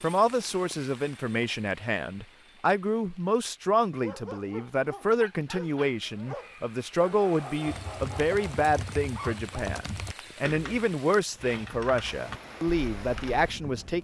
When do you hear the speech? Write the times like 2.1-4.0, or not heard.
0.0-13.9.